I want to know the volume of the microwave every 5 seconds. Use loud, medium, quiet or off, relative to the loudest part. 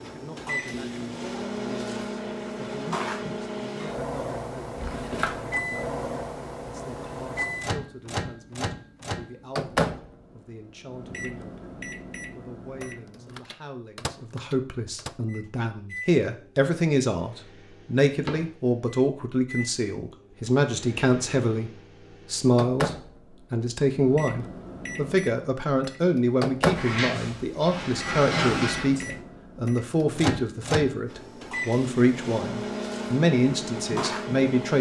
loud, loud, medium, medium, medium, loud, loud.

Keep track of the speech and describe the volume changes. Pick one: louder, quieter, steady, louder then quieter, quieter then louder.
louder.